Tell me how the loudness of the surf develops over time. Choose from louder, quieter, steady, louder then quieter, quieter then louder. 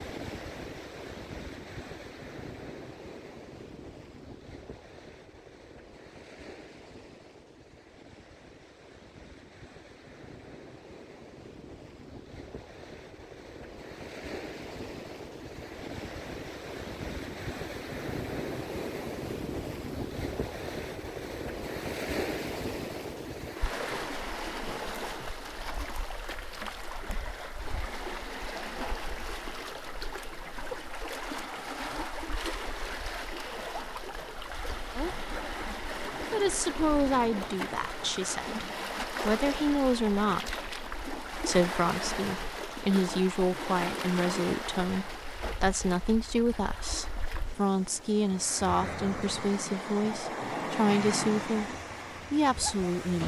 louder.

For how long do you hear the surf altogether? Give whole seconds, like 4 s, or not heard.
53 s.